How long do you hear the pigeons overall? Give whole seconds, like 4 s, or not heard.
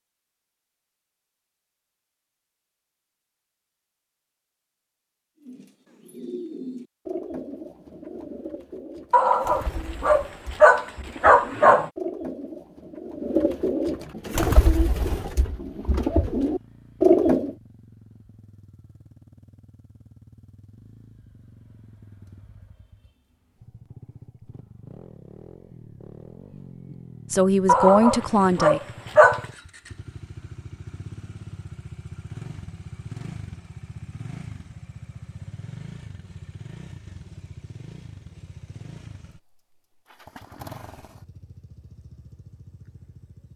12 s.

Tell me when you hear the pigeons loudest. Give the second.
17 s.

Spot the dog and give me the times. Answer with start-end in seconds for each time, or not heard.
9.1-11.9, 27.6-29.4.